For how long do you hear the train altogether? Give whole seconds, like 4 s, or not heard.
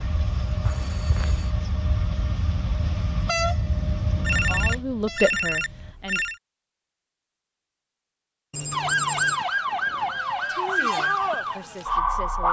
6 s.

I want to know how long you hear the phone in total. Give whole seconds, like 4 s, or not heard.
4 s.